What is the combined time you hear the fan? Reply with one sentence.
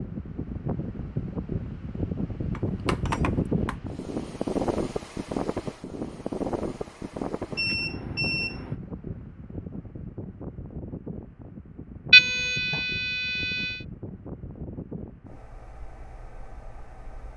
The fan can be heard for 17 seconds in total.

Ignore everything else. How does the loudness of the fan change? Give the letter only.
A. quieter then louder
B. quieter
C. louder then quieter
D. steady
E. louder
B.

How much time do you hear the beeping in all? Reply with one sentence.
You can hear the beeping for 4 seconds altogether.